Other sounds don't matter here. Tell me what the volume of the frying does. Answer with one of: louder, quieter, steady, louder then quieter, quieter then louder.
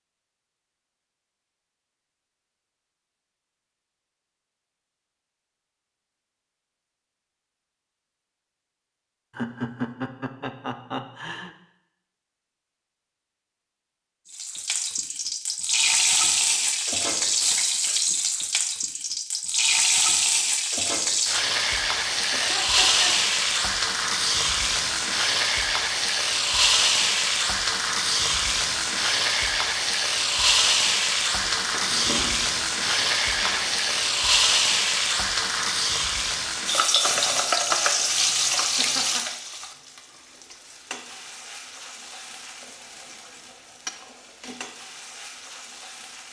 quieter.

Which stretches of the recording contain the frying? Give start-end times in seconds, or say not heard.
14.3-46.2.